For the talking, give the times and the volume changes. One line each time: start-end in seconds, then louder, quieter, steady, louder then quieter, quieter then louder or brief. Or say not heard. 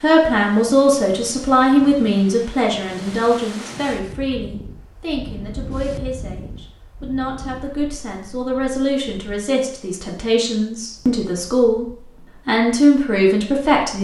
0.0-11.8 quieter then louder
12.4-13.9 brief.